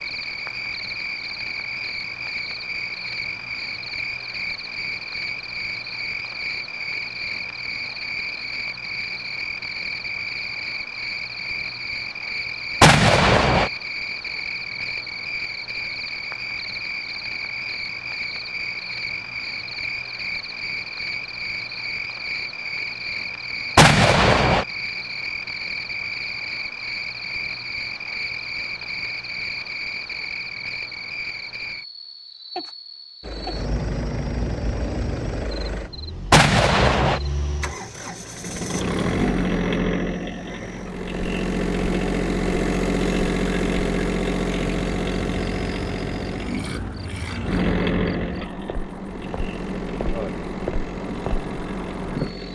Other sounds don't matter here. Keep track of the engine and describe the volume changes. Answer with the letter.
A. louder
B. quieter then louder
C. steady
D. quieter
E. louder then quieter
E.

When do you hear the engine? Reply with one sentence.
You can hear the engine from 33.2 to 52.5 s.